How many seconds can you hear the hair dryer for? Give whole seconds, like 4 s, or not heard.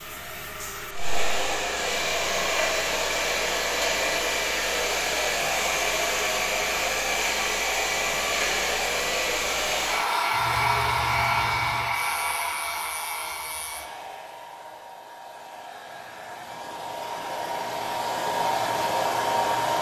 20 s.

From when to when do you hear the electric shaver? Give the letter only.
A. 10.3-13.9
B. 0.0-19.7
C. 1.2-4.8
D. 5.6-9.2
A.